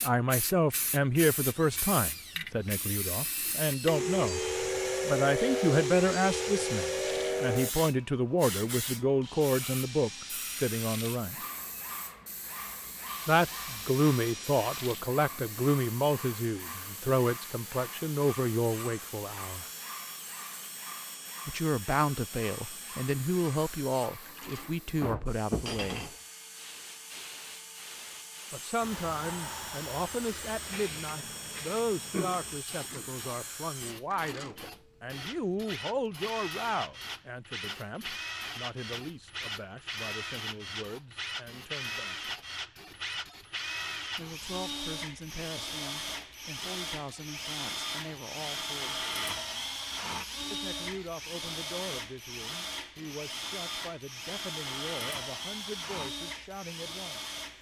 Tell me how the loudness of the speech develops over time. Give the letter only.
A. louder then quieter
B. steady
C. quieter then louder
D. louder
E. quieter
E.